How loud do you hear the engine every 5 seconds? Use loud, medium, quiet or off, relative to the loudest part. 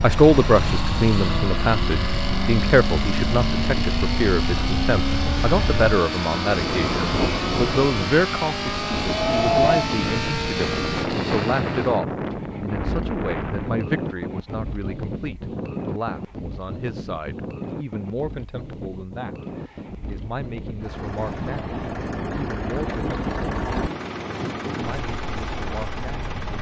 loud, loud, medium, quiet, medium, medium.